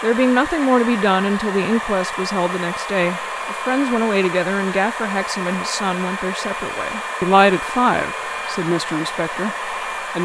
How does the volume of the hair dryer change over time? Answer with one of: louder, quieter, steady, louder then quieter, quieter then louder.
steady.